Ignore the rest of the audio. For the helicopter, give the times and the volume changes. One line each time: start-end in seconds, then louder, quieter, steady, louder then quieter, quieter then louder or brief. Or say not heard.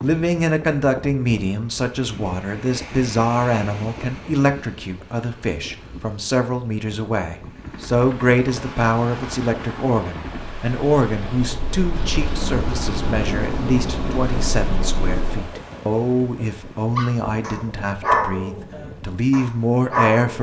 7.5-15.5 louder.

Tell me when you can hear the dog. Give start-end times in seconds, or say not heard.
16.9-20.3.